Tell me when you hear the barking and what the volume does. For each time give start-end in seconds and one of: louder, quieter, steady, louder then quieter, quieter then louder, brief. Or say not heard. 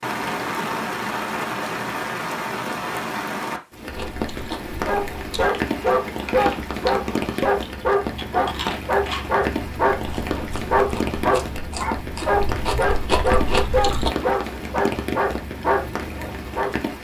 4.8-16.8 steady.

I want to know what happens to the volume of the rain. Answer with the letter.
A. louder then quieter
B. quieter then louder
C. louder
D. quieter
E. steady
E.